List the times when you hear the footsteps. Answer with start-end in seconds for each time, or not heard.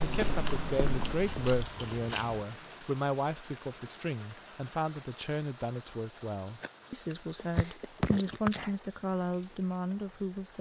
0.0-1.4.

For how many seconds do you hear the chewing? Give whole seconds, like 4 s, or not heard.
4 s.